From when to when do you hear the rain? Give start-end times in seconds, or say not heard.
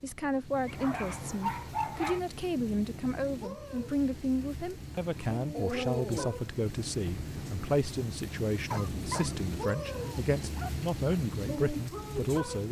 0.0-12.6.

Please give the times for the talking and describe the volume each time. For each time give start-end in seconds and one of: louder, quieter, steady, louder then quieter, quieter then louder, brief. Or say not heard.
0.0-12.6 steady.